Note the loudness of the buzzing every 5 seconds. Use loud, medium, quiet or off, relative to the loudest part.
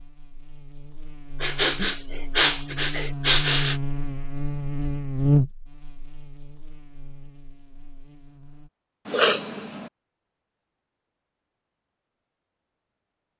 medium, loud, off.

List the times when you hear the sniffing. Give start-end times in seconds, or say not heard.
1.4-3.8, 9.1-9.8.